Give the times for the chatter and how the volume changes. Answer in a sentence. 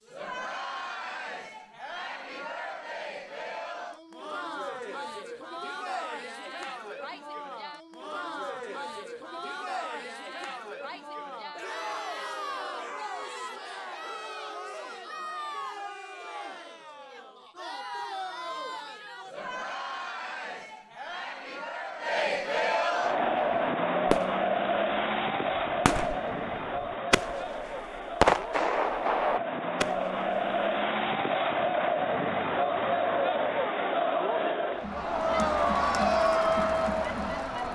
You can hear the chatter from 0.0 to 37.7 s, getting louder.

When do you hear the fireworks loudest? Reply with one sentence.
The volume of the fireworks peaks at 28 seconds.